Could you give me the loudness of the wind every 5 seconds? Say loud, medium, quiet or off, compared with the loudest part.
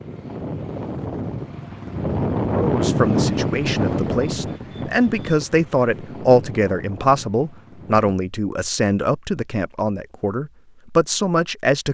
loud, quiet, off.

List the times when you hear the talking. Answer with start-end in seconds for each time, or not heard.
2.5-11.9.